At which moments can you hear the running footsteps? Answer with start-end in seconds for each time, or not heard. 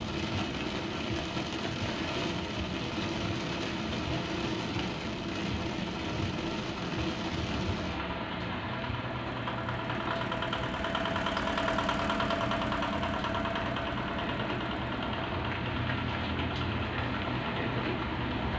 not heard.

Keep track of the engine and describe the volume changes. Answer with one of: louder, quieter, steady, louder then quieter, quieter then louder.
louder then quieter.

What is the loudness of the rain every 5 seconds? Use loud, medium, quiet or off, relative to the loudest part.
loud, loud, medium, loud.